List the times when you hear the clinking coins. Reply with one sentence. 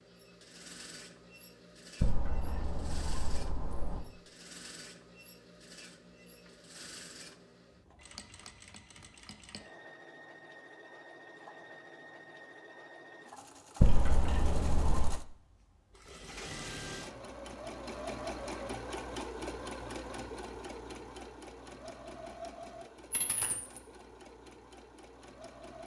You can hear the clinking coins from 2.0 to 4.0 s, from 13.8 to 15.2 s and from 23.1 to 23.8 s.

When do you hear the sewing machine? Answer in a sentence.
You can hear the sewing machine from 0.0 to 25.8 s.